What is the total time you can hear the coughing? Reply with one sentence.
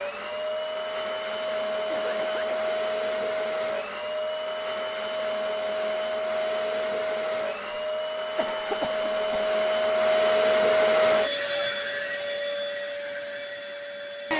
The coughing can be heard for 2 seconds in total.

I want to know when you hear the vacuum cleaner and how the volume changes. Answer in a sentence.
The vacuum cleaner can be heard from 0.0 to 14.3 s, getting louder.